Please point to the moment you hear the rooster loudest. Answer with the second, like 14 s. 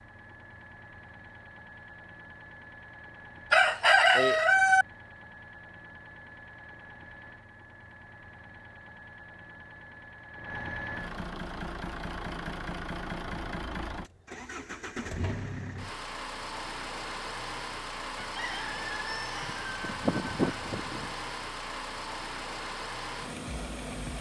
4 s.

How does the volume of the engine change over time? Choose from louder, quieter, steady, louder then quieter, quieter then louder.
louder.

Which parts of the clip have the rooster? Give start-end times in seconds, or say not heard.
3.5-4.8, 18.1-21.1.